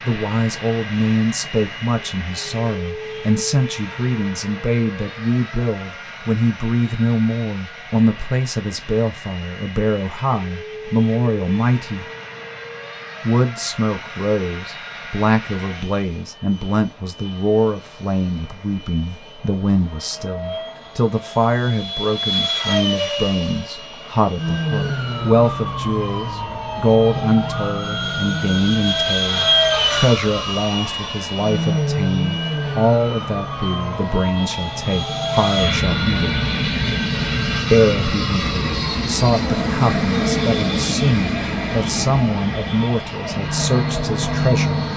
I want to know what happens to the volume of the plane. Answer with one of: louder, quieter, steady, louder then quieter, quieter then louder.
louder.